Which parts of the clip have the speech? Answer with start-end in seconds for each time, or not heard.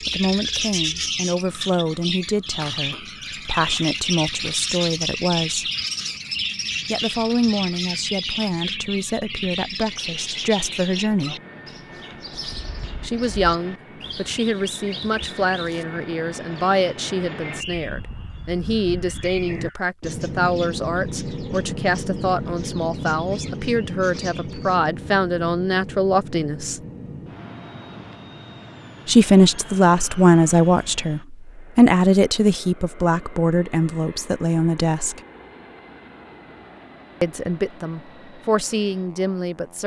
0.0-5.7, 6.9-11.3, 13.0-26.8, 29.1-35.2, 37.2-39.8.